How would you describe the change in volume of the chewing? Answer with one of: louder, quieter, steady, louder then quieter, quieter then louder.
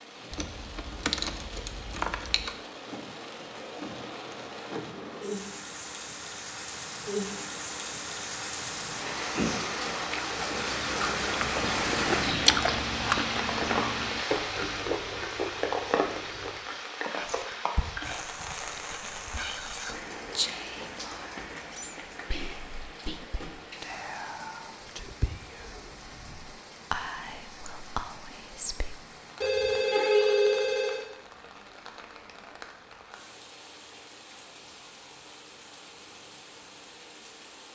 louder then quieter.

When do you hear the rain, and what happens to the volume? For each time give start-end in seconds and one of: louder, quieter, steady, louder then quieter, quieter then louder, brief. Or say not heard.
0.0-37.6 louder then quieter.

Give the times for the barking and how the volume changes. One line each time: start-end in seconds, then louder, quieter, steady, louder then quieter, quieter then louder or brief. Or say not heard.
not heard.